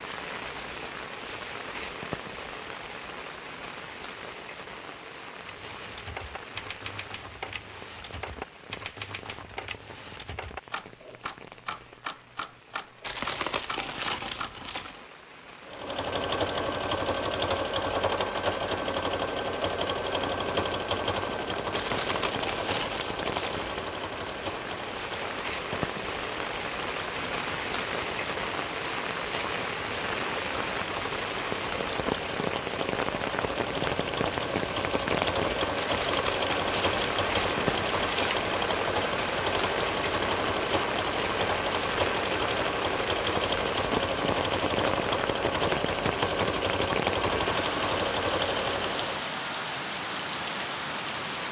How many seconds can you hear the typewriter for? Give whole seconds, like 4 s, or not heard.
9 s.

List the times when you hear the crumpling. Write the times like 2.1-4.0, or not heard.
13.0-15.1, 21.7-23.8, 35.8-38.4.